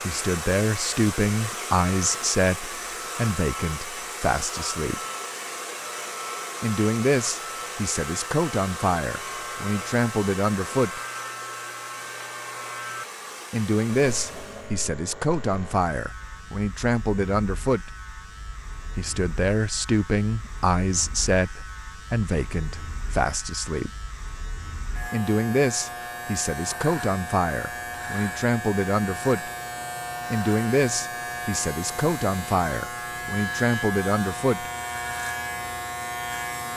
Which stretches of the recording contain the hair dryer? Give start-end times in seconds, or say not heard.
0.0-14.8.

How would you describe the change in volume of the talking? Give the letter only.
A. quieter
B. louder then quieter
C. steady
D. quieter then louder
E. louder
C.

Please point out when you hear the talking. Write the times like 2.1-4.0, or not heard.
0.0-5.0, 6.6-11.0, 13.5-17.9, 18.9-23.9, 25.1-29.5, 30.3-34.7.